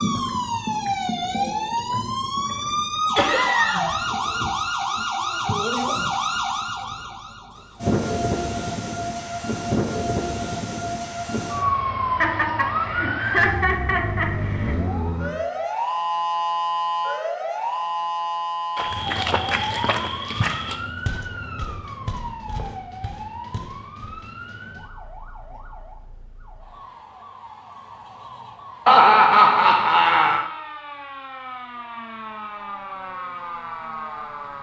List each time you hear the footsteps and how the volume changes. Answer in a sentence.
The footsteps can be heard from 18.8 to 24.1 s, getting quieter.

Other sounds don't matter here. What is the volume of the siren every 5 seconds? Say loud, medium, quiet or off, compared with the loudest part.
loud, loud, loud, loud, medium, quiet, medium.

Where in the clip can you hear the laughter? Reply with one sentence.
You can hear the laughter from 3.1 to 4.0 s, from 12.2 to 14.8 s and from 28.9 to 30.4 s.